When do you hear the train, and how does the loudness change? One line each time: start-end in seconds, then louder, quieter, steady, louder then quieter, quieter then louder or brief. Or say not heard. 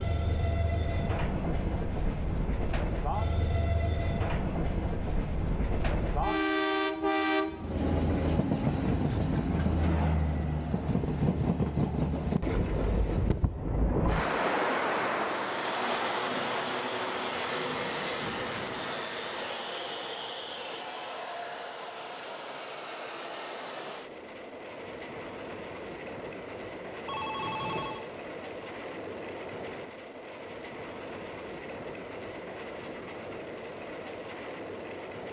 0.0-35.2 quieter.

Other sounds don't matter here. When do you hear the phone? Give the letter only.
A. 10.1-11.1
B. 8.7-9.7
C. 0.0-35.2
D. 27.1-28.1
D.